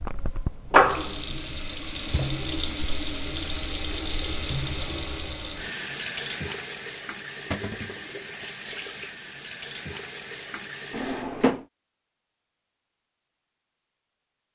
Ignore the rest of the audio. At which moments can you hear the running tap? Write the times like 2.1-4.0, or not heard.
0.0-11.3.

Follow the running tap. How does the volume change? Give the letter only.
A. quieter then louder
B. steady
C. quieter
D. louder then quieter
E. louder
C.